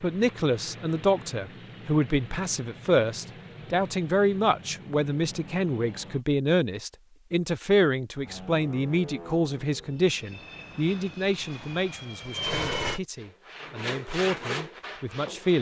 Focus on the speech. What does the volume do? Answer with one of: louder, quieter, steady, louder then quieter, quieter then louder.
quieter.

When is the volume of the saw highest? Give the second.
14 s.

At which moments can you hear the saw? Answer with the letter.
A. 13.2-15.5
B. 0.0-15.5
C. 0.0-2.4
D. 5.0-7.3
A.